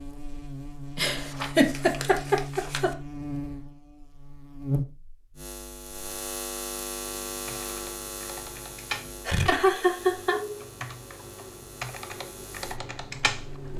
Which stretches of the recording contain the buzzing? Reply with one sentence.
You can hear the buzzing from 0.0 to 13.7 s.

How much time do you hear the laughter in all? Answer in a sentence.
The laughter can be heard for 3 seconds in total.